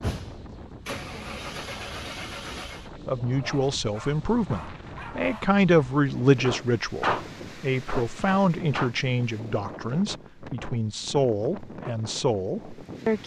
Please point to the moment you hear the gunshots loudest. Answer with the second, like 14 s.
7 s.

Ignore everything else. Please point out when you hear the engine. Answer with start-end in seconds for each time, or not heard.
0.0-2.9.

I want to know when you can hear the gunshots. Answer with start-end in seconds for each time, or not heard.
6.4-8.9.